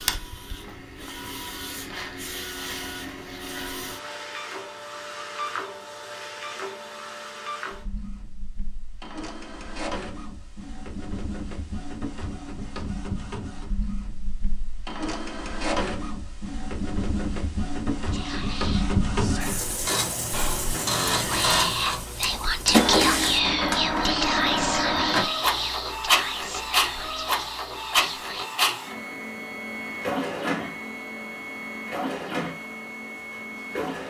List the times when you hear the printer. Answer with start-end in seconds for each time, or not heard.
0.0-34.0.